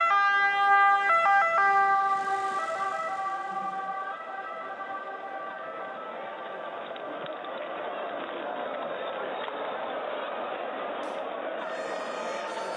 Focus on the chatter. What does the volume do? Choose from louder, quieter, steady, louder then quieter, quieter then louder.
louder.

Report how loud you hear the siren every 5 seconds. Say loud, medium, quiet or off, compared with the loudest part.
loud, quiet, quiet.